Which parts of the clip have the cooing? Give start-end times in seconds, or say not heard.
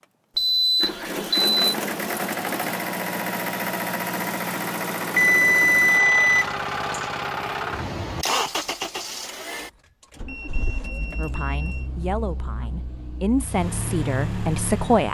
not heard.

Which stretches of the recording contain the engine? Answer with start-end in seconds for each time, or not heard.
0.8-15.0.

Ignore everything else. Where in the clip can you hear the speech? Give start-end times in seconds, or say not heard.
11.2-15.0.